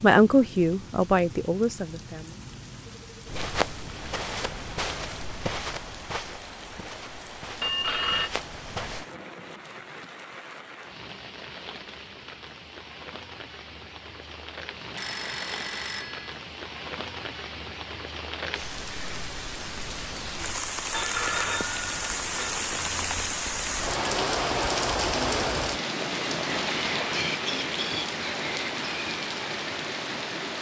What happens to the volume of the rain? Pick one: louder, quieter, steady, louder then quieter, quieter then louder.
louder.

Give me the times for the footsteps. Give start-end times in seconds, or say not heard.
3.2-9.1.